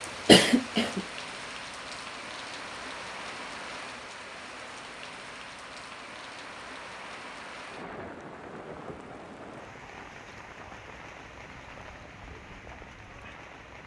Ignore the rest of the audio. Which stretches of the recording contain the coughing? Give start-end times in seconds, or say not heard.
0.2-1.0.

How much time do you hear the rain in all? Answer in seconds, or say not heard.
14 s.